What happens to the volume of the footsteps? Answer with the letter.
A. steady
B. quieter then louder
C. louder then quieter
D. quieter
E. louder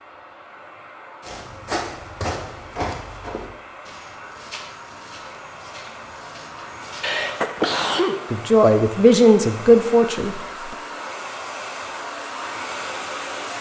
D.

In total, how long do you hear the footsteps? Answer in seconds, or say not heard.
6 s.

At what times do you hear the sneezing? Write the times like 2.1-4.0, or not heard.
7.0-8.2.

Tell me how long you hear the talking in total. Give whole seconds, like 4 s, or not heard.
2 s.